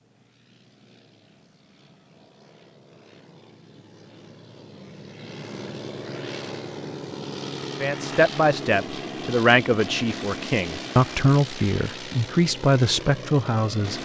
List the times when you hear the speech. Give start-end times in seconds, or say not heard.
7.8-14.0.